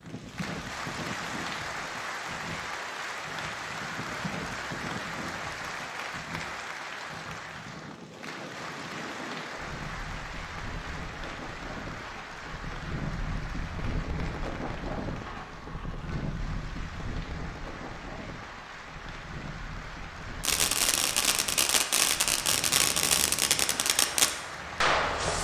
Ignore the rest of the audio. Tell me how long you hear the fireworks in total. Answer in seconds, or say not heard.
5 s.